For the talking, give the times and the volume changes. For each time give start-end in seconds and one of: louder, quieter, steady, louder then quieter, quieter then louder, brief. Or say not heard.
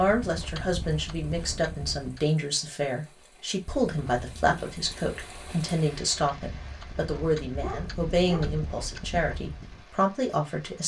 0.0-10.8 steady.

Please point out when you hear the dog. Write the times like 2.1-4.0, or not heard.
7.2-8.6.